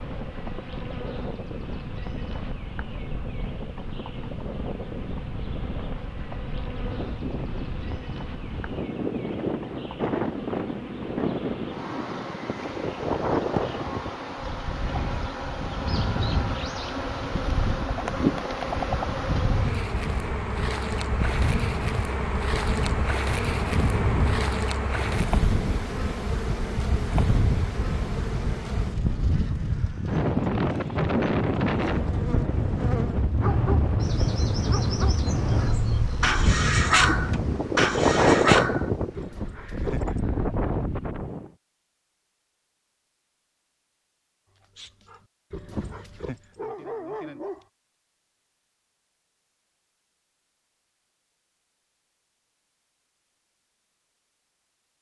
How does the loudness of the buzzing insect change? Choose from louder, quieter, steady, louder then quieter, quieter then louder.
louder then quieter.